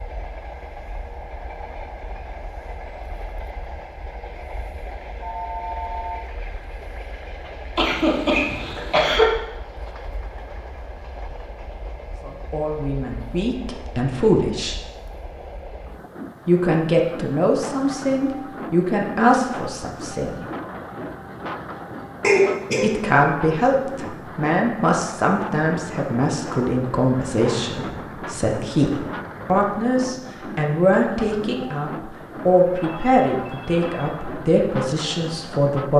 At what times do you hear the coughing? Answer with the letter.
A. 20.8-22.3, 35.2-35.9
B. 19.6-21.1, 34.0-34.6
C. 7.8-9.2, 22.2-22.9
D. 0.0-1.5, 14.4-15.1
C.